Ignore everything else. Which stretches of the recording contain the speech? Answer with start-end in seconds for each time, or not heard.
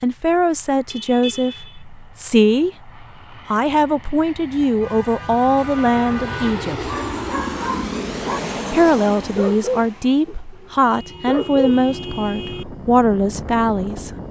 0.0-6.9, 8.7-14.1.